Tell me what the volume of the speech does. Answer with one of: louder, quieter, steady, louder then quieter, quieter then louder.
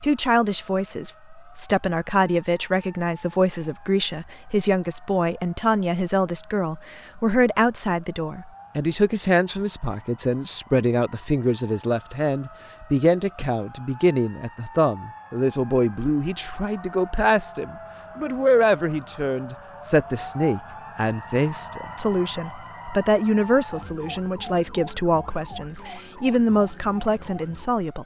steady.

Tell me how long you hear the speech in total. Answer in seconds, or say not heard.
28 s.